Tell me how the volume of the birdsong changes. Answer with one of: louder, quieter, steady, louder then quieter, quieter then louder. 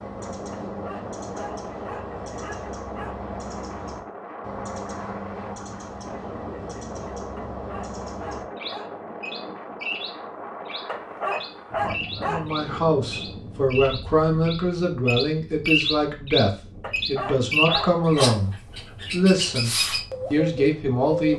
louder.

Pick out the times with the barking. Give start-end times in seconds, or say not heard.
0.5-3.2, 7.3-9.0, 10.8-12.6, 16.8-18.5.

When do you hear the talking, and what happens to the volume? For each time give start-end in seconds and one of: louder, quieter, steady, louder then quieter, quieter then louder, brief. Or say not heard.
12.2-19.7 steady
20.3-21.3 brief.